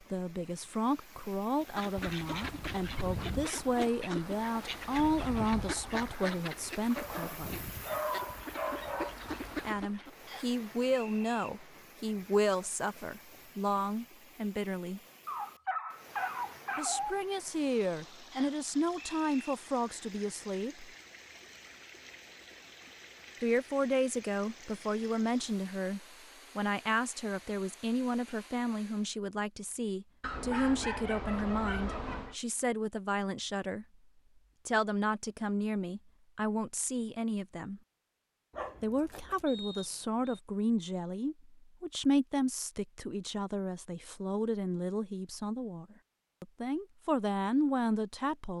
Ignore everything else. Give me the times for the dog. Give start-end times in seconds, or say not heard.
7.0-9.2, 15.2-17.2, 30.2-32.4, 38.5-39.5.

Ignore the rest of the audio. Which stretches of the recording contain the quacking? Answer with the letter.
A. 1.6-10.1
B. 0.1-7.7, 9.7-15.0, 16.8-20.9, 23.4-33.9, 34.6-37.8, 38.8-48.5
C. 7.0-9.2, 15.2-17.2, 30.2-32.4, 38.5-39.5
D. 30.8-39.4
A.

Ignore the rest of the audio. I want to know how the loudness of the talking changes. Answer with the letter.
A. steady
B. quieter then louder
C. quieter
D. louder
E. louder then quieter
A.